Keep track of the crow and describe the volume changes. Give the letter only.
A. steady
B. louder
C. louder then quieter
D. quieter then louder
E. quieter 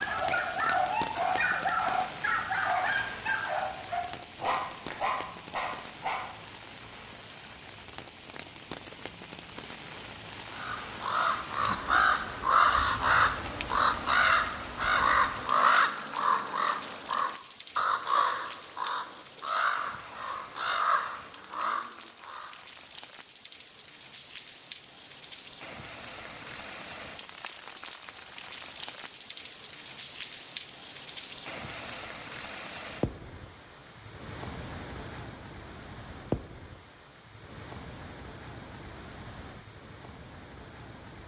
E.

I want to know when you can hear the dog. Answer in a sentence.
You can hear the dog from 0.0 to 6.5 s.